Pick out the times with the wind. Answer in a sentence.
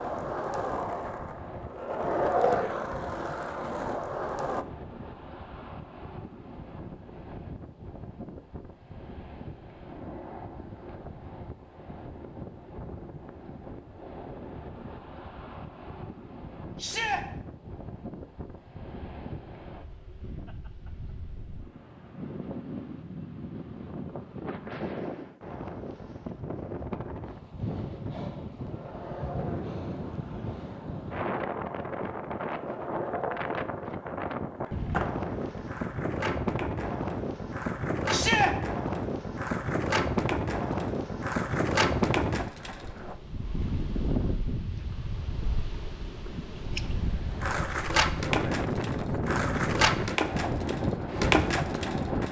You can hear the wind from 0.0 to 52.2 s.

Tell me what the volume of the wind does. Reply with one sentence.
The loudness of the wind goes up.